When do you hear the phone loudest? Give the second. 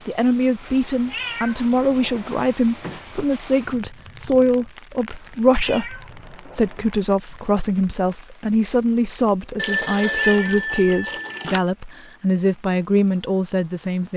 10 s.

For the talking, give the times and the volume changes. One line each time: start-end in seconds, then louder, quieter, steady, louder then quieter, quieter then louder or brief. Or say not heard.
0.1-14.1 steady.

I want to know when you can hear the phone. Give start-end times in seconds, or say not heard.
9.6-11.6.